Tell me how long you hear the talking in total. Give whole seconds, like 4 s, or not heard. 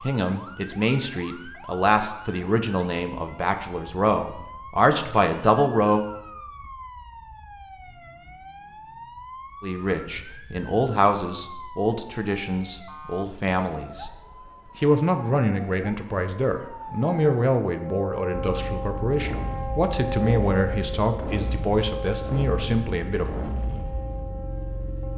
19 s.